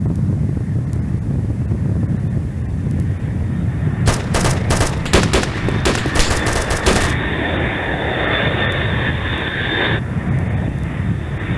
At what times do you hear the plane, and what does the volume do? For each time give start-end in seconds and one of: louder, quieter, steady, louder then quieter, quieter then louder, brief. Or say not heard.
0.0-11.5 steady.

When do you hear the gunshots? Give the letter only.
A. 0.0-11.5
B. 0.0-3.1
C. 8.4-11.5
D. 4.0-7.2
D.